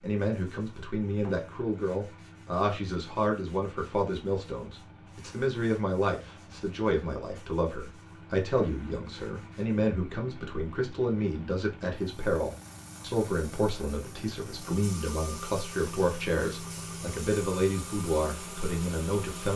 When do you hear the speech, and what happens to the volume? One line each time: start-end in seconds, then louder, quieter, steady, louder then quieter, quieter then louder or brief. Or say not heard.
0.0-19.5 steady.